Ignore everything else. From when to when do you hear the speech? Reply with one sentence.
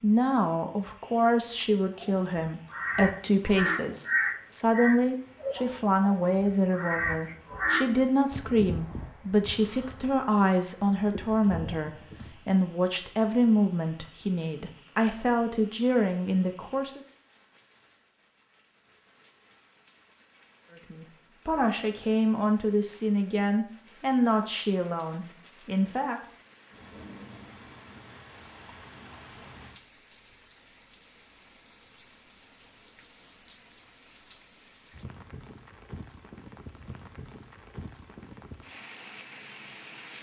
The speech can be heard from 0.0 to 17.0 s and from 20.7 to 26.2 s.